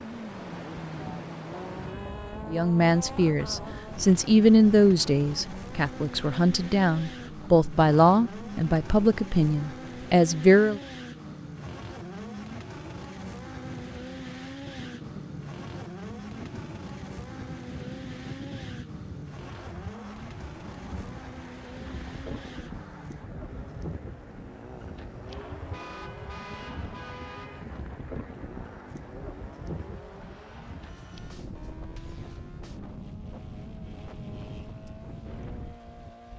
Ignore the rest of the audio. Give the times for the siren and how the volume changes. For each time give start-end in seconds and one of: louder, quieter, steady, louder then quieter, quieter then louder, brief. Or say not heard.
not heard.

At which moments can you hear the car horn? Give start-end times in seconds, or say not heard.
1.9-2.5, 25.6-27.6.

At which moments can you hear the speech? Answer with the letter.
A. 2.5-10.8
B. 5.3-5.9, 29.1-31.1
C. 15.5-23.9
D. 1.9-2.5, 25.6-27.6
A.